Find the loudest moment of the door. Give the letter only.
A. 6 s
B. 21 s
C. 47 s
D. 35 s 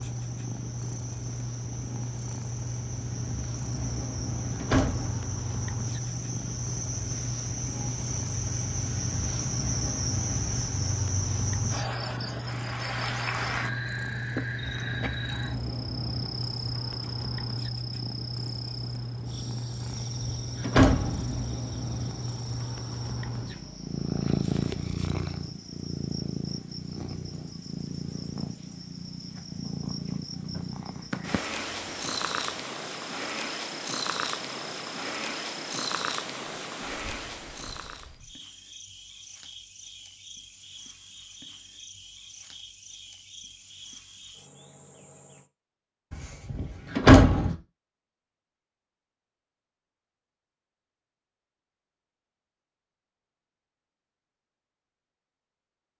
C.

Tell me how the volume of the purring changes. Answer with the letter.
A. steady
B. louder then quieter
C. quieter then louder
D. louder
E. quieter
A.